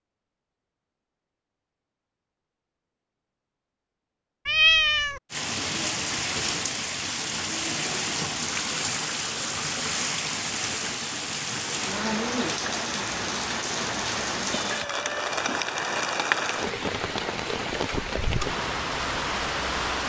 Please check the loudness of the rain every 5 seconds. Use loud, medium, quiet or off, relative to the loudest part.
off, loud, loud, loud.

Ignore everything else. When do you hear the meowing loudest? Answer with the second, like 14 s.
5 s.